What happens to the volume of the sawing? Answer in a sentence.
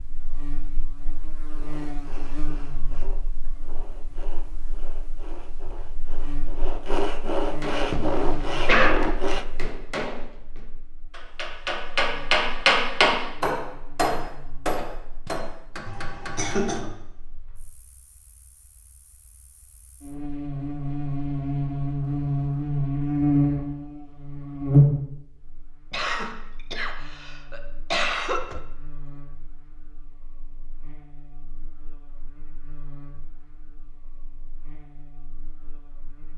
The volume of the sawing goes up.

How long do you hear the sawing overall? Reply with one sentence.
You can hear the sawing for 8 seconds altogether.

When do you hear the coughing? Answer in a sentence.
The coughing can be heard from 7.9 to 8.9 s, from 15.8 to 16.9 s and from 25.9 to 28.4 s.